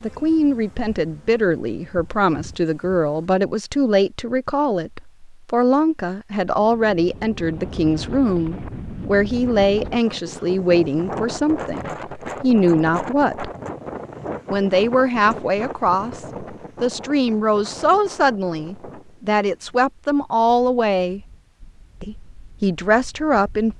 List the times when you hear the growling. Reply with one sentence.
You can't hear the growling here.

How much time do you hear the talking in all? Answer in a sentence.
The talking can be heard for 22 seconds in total.